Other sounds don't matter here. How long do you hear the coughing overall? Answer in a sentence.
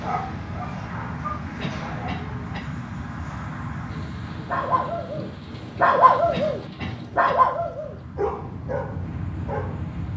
The coughing can be heard for 2 seconds in total.